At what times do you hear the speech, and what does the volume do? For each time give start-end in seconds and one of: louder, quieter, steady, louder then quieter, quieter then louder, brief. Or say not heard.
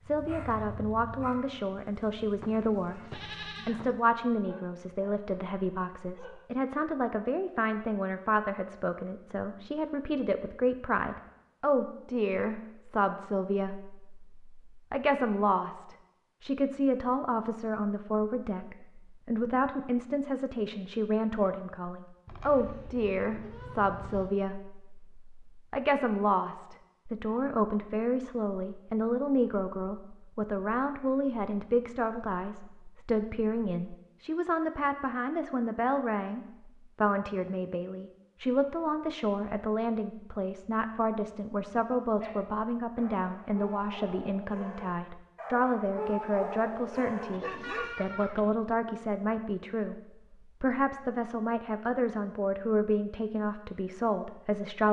0.0-54.8 steady.